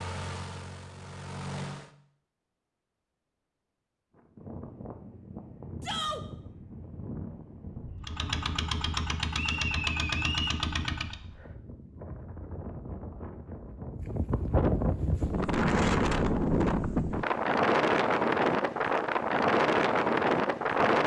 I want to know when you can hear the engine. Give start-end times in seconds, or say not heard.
0.0-1.9, 8.0-11.2.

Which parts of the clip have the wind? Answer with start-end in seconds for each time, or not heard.
4.2-21.0.